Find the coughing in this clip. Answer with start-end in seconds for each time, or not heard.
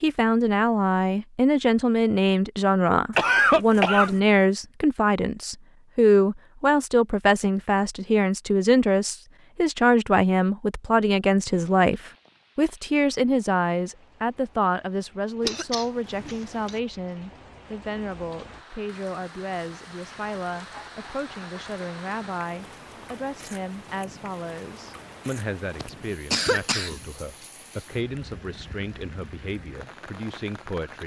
3.1-4.2, 15.4-16.8, 25.8-27.1.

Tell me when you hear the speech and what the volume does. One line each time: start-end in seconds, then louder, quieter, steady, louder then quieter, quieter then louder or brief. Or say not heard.
0.0-31.0 quieter.